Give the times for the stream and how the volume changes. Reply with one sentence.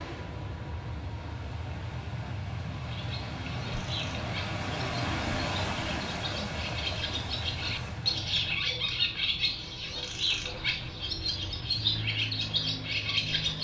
The stream can be heard from 0.0 to 8.6 s, getting louder then quieter.